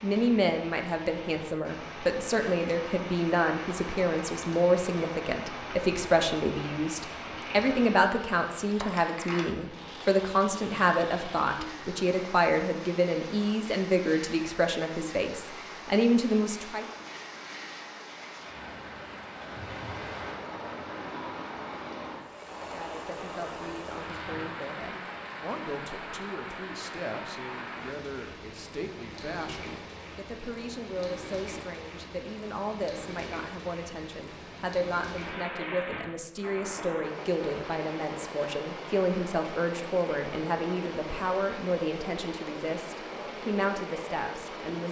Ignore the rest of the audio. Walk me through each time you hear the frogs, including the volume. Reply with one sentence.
The frogs can't be heard in this clip.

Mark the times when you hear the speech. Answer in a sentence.
The speech can be heard from 0.0 to 16.9 s and from 22.6 to 44.8 s.